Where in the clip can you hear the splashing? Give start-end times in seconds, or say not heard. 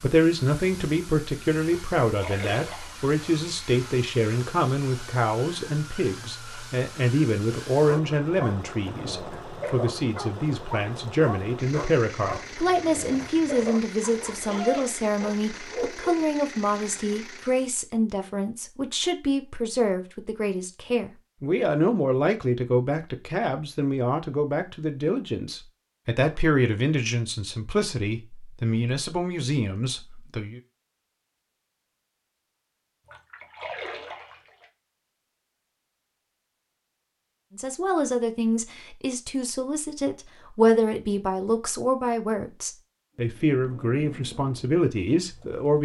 1.6-3.0, 33.0-34.6.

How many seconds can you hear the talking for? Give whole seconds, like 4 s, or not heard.
39 s.